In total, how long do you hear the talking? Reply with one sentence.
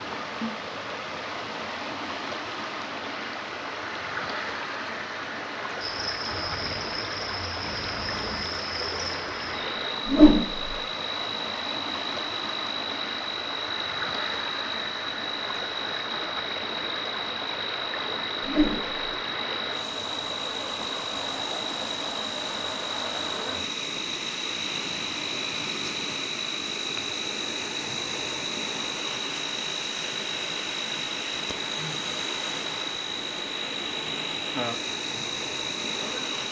You can't hear the talking here.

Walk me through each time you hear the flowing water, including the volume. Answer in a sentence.
The flowing water can be heard from 0.0 to 36.4 s, at a steady volume.